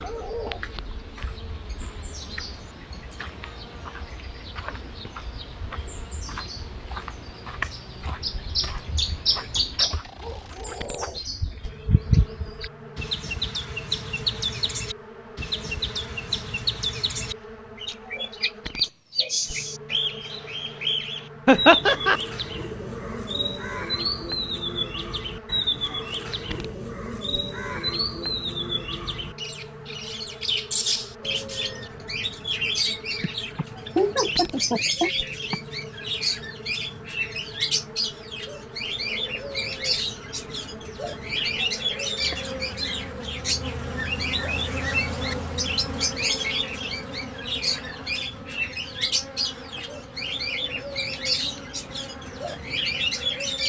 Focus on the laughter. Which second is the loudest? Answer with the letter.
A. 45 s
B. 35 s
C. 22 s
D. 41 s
C.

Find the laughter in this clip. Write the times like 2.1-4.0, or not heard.
21.4-22.2, 33.2-35.5.